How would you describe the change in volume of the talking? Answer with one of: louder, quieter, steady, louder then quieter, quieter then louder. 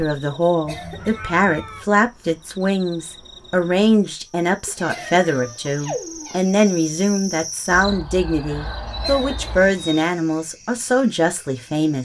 steady.